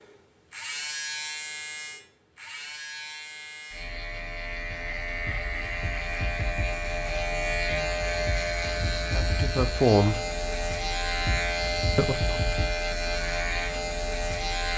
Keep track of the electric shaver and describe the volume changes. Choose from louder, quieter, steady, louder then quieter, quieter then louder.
louder.